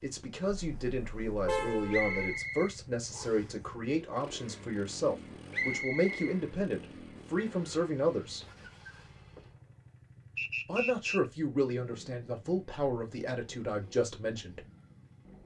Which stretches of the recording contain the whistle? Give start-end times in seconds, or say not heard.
1.9-3.5, 5.5-6.3, 10.3-11.2.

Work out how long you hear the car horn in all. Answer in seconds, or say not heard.
2 s.